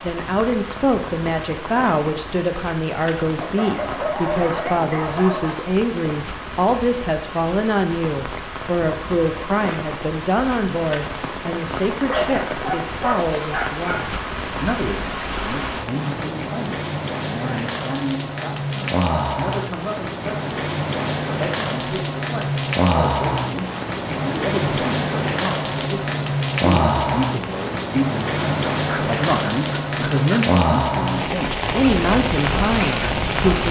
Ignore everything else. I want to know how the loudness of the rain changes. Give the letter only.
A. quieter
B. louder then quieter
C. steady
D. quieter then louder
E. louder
E.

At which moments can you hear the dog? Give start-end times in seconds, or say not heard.
3.4-5.6, 12.1-14.1, 28.4-30.4.